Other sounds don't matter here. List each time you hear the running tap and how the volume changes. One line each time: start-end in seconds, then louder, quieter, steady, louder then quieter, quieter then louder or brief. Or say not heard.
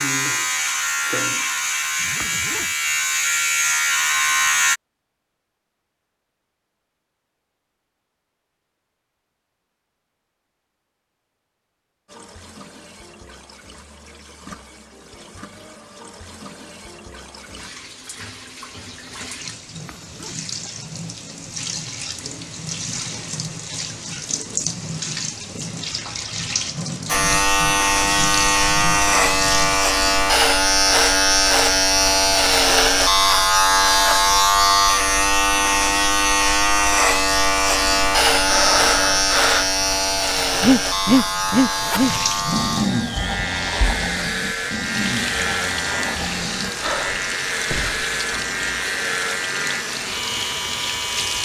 12.1-29.8 louder
37.3-51.4 louder.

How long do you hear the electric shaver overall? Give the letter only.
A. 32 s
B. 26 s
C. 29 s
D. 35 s
C.